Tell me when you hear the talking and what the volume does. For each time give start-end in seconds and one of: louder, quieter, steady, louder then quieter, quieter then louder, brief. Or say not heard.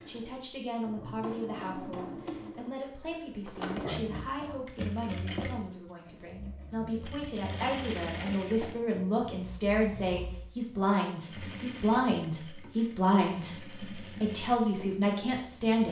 0.1-15.8 louder.